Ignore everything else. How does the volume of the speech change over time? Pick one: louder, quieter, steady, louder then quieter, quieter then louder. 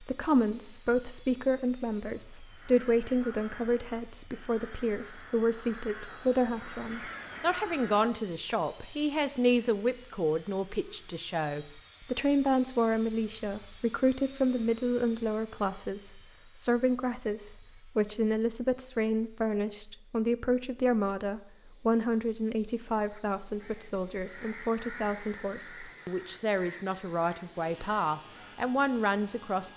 steady.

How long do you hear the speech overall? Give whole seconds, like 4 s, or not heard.
30 s.